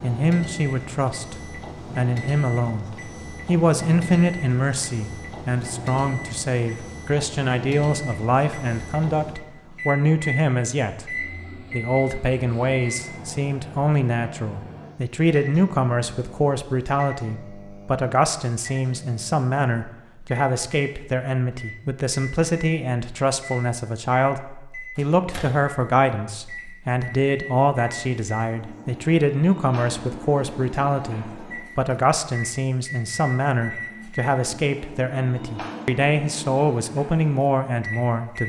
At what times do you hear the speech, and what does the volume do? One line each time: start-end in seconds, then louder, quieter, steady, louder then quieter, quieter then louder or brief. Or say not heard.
0.0-38.4 steady.